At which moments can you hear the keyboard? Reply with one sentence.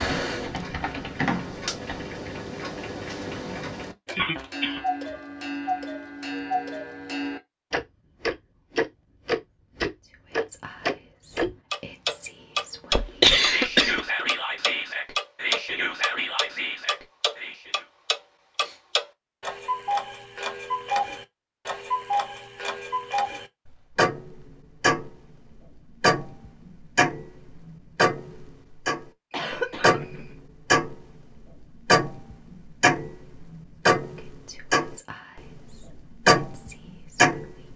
You can hear the keyboard from 0.0 to 2.5 s.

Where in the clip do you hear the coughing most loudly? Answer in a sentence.
The volume of the coughing peaks at 13 seconds.